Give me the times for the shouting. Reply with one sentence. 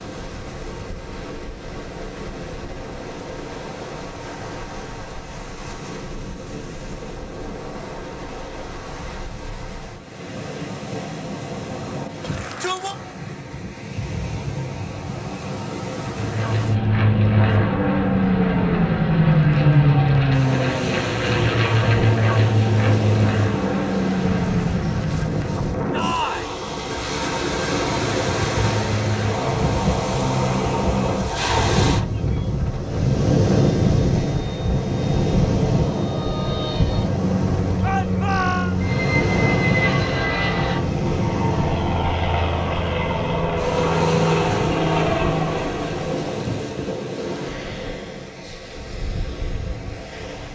The shouting can be heard from 12.2 to 12.9 s, from 25.9 to 26.6 s and from 37.8 to 38.8 s.